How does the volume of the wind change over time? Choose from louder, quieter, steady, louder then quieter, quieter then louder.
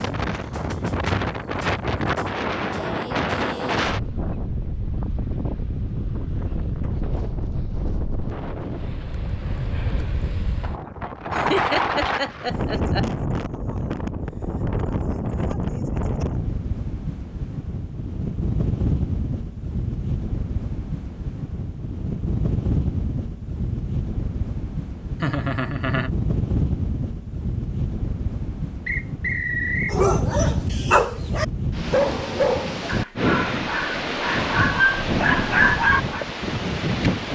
steady.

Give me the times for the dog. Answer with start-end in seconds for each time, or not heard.
29.9-36.2.